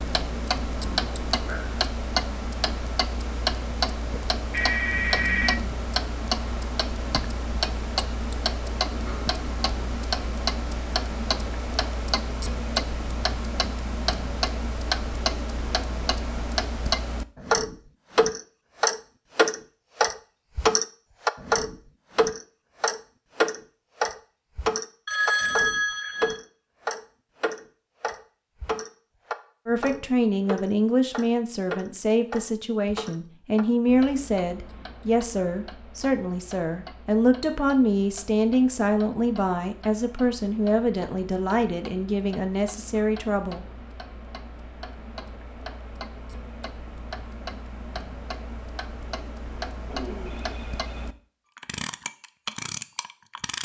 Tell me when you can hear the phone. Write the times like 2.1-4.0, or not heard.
4.4-5.7, 25.1-26.4, 49.9-51.0.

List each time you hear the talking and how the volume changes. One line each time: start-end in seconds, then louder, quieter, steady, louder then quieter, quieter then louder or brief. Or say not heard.
29.6-43.6 steady.